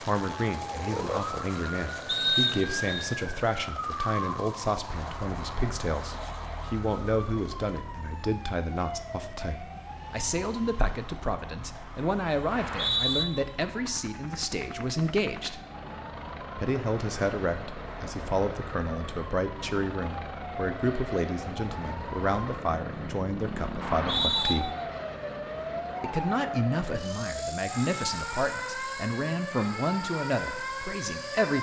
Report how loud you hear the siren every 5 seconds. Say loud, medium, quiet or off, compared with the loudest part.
loud, medium, medium, medium, loud, loud, loud.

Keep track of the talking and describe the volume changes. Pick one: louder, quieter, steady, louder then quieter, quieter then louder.
steady.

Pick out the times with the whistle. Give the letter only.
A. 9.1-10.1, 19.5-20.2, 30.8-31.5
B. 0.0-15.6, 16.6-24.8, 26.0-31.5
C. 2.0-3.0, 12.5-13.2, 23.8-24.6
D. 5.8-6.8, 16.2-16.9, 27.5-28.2
C.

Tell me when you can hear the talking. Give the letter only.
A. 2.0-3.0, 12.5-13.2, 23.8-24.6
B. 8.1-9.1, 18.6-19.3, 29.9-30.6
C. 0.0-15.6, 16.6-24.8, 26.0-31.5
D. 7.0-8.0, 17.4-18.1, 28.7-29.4
C.